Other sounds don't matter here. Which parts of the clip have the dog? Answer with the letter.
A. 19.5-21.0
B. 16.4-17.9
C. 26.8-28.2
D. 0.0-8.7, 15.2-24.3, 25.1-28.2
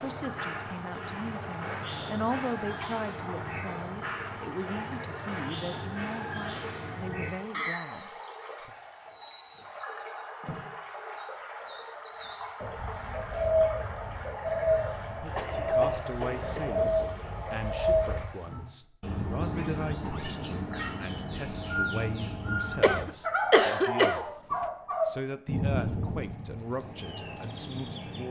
A.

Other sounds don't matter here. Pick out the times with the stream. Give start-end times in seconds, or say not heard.
0.0-18.8.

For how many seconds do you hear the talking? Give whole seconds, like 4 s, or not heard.
21 s.